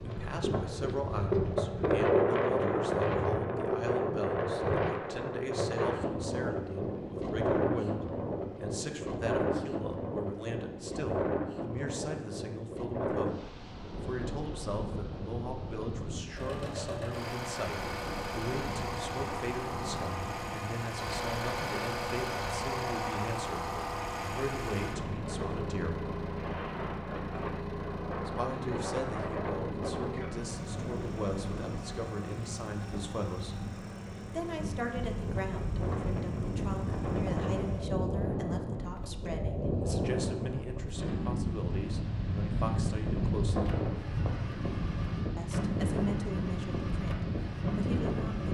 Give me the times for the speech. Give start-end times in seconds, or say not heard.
0.0-26.0, 28.2-33.6, 34.3-43.8, 45.4-48.5.